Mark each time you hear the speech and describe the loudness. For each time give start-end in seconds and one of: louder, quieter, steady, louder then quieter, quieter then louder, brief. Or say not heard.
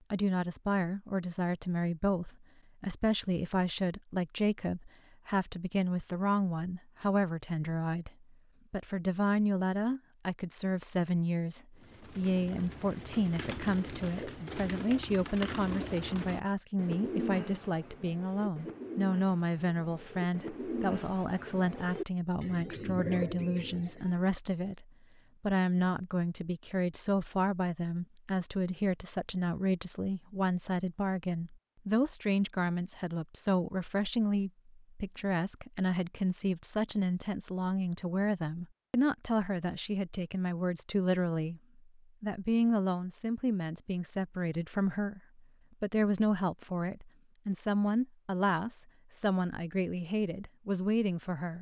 0.1-8.1 steady
8.7-51.5 steady.